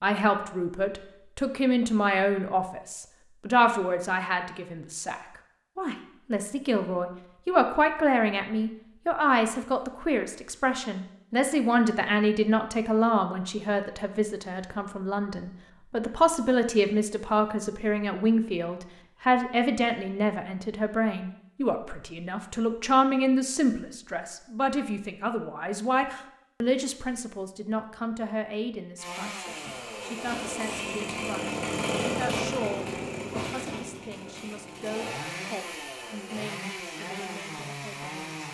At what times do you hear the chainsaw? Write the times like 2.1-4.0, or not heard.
28.9-38.4.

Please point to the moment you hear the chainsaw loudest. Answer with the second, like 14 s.
32 s.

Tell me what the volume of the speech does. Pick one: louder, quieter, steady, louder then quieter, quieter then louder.
quieter.